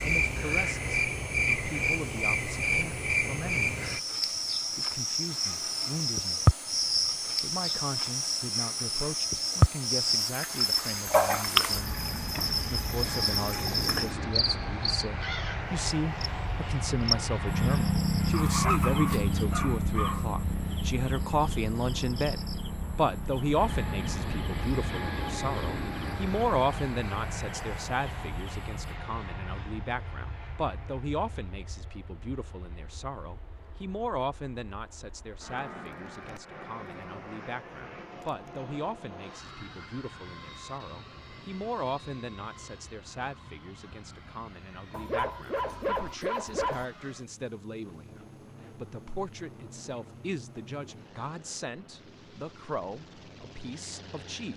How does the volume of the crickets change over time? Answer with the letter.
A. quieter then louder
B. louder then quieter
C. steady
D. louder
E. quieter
E.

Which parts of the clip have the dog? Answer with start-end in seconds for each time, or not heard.
18.3-20.2, 44.9-46.9.